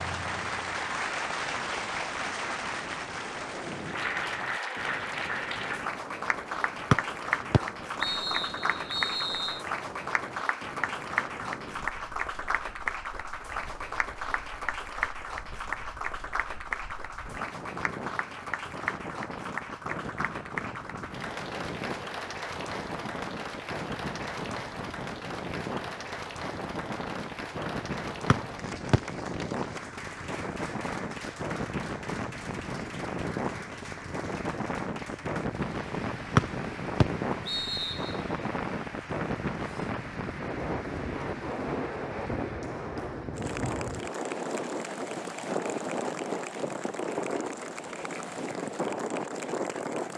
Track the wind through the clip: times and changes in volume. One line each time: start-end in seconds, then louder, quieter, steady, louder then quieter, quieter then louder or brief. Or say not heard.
0.0-50.1 louder.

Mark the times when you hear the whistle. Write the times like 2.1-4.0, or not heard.
6.9-9.6, 28.3-29.0, 36.4-38.1.